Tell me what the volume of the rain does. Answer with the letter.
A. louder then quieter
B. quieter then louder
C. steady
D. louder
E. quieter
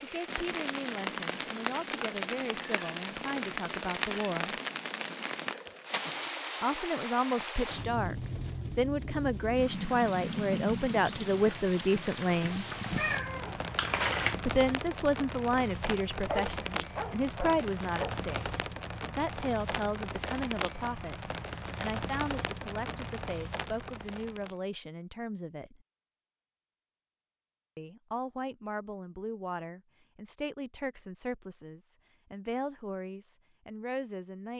C.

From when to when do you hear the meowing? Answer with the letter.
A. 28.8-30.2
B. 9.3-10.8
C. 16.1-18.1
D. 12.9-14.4
D.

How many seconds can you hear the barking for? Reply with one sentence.
The barking can be heard for 2 seconds in total.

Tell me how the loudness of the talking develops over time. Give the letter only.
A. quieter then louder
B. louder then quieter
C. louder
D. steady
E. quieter
B.